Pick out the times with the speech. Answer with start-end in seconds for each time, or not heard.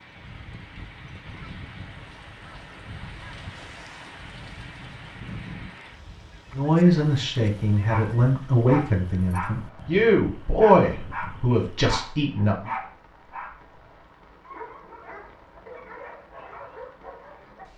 6.5-12.7.